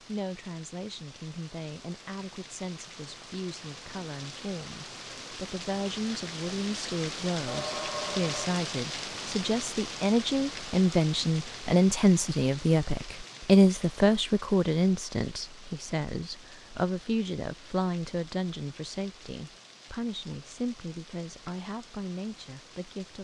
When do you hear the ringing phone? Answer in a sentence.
The ringing phone can be heard from 7.5 to 8.6 s.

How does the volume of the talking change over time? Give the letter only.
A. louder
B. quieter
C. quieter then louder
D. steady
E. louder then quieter
E.